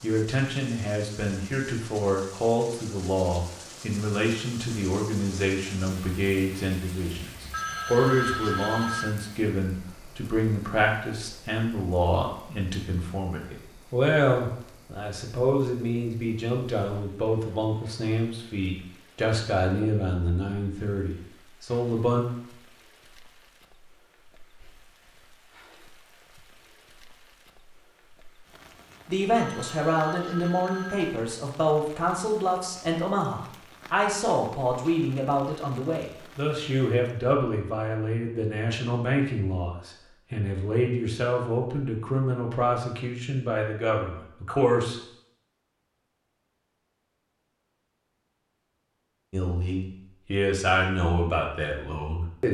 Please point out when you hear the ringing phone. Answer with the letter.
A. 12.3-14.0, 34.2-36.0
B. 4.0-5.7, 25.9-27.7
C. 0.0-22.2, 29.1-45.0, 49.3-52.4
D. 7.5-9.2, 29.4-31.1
D.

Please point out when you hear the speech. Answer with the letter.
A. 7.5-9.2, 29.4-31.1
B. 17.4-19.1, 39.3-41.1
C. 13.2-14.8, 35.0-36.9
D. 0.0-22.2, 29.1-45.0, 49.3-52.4
D.